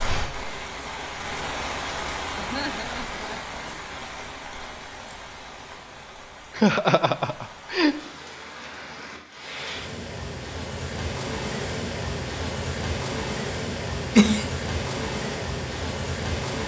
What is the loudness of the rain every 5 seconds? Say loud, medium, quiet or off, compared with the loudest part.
loud, medium, loud, loud.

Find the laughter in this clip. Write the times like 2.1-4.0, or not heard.
2.4-3.6, 6.5-8.0, 13.7-14.5.